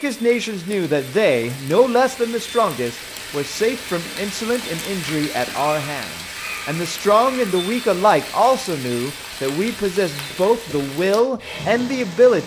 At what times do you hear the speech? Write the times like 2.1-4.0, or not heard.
0.0-12.4.